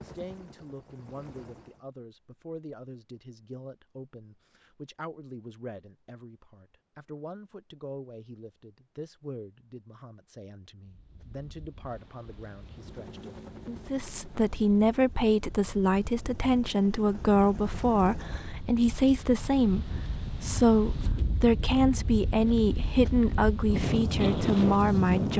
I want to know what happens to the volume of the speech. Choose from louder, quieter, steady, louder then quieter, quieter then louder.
louder.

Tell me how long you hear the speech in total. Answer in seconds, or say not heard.
25 s.